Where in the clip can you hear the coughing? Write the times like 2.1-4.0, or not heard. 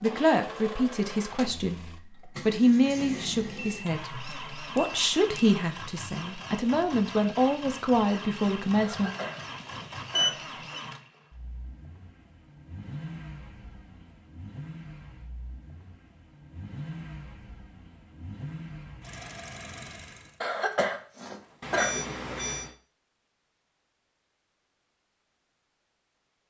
8.8-10.8, 20.4-22.4.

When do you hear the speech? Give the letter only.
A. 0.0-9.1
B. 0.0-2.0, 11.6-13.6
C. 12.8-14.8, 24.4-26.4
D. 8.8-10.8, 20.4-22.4
A.